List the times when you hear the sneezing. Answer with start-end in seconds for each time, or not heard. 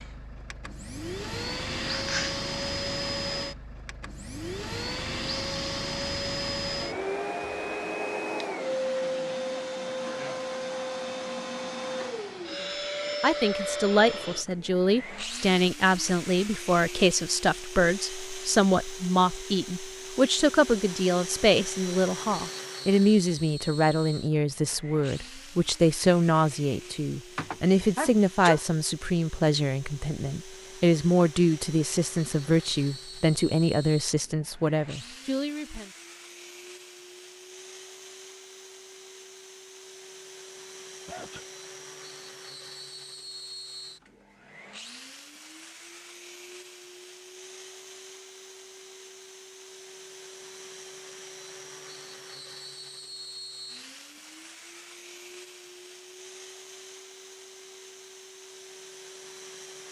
1.7-2.4, 27.4-28.6, 41.0-41.5.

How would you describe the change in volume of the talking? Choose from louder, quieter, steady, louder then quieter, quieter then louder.
steady.